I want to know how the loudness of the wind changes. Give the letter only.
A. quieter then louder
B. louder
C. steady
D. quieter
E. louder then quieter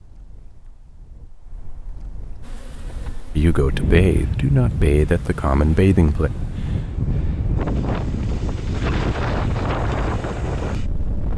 B.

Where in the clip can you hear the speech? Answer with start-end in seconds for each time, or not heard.
3.4-6.3.